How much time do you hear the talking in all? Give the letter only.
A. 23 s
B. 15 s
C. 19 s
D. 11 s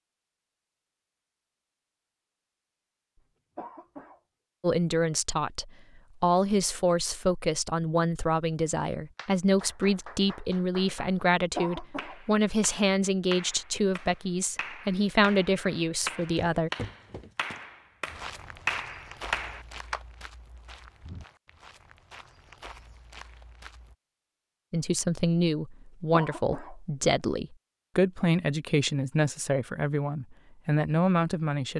C.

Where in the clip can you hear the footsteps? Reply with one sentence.
You can hear the footsteps from 16.0 to 23.9 s.